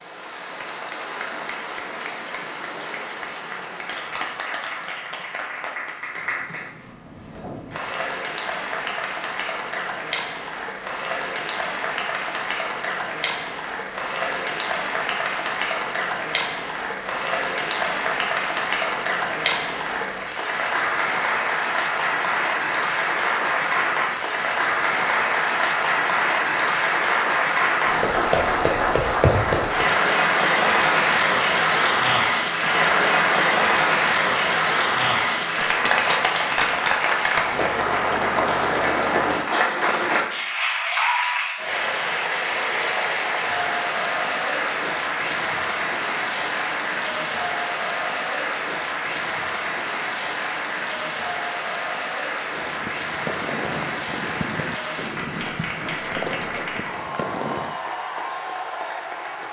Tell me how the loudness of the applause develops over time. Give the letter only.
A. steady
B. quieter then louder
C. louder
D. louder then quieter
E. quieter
D.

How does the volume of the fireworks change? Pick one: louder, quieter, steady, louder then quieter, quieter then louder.
steady.